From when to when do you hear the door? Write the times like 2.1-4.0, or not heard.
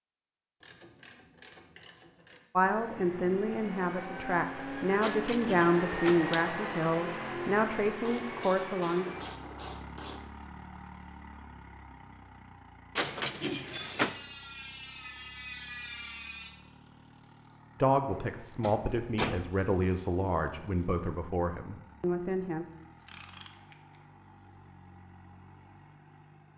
5.0-6.5, 12.9-14.2, 18.1-19.6.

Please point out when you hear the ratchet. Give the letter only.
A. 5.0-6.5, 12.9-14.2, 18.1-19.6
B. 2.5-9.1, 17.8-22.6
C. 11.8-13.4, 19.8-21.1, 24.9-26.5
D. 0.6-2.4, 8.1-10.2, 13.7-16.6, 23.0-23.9
D.